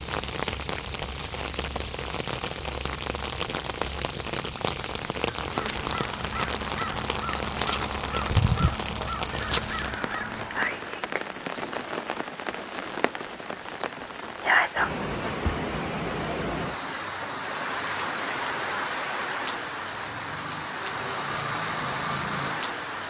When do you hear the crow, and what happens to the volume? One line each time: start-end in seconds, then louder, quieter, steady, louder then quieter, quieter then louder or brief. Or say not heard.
5.4-10.9 steady.